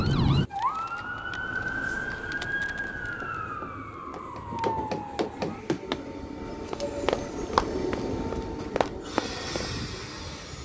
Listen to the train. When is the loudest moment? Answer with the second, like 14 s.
8 s.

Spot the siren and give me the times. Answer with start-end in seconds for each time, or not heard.
0.0-5.7.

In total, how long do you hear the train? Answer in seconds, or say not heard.
10 s.